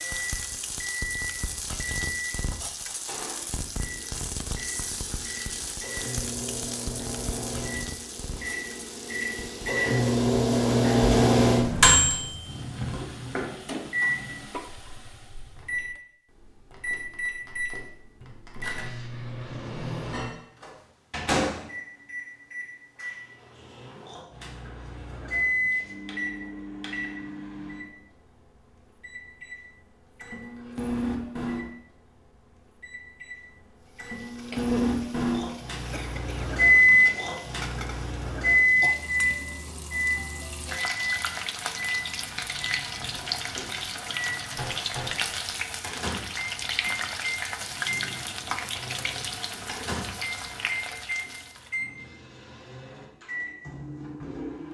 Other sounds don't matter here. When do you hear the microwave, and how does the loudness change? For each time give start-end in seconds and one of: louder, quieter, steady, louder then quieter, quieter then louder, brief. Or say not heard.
0.0-27.9 louder then quieter
29.0-31.6 brief
32.8-54.7 quieter.